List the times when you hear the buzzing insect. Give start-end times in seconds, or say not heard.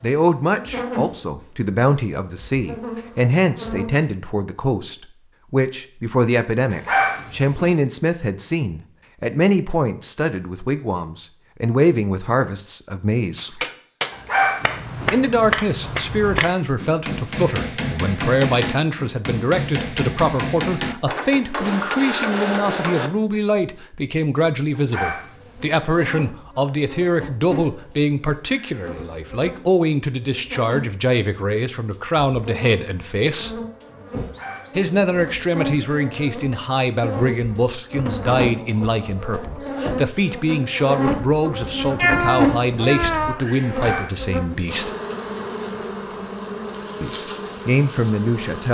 0.5-4.0, 25.4-48.7.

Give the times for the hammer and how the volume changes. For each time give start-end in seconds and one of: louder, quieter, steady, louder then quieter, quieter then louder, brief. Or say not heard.
13.3-23.1 steady.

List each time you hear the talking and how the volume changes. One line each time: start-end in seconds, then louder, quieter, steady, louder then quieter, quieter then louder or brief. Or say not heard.
0.0-13.7 steady
15.1-33.6 steady
34.8-44.9 steady
47.0-48.7 brief.